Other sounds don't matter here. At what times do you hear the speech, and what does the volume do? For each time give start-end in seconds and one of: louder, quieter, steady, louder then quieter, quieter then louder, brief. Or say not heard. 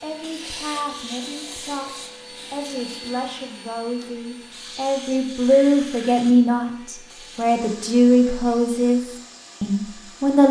0.0-10.4 louder.